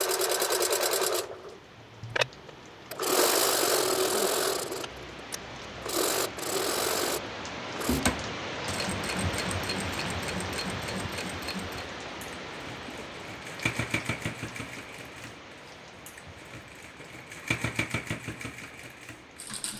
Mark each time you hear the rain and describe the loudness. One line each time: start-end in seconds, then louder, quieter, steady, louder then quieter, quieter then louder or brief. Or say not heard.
0.0-19.7 louder then quieter.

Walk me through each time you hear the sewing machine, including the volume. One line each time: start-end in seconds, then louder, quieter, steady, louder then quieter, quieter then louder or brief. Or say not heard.
0.0-19.7 quieter.